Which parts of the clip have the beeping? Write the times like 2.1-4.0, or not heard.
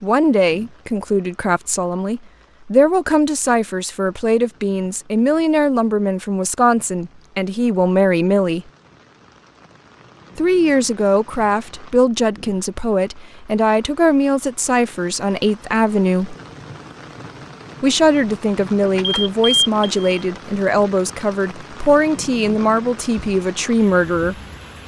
18.8-20.1.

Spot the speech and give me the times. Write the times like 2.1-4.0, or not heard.
0.0-8.7, 10.3-16.4, 17.8-24.4.